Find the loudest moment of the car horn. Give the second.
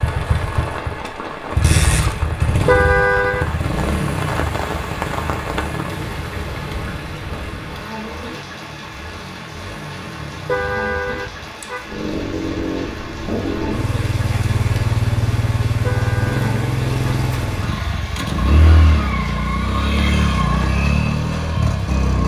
3 s.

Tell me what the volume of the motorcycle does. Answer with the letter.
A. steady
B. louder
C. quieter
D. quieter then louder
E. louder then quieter
D.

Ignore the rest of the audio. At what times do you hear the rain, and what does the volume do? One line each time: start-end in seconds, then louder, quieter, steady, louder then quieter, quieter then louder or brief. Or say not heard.
0.0-22.1 quieter.